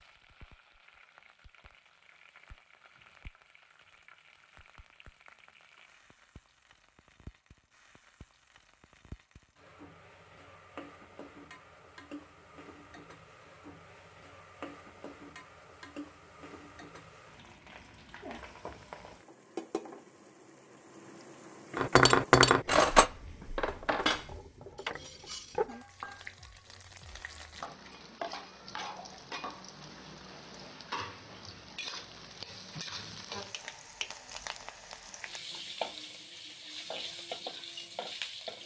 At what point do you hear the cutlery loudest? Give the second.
22 s.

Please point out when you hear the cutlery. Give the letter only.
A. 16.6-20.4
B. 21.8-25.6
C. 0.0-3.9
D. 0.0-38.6
B.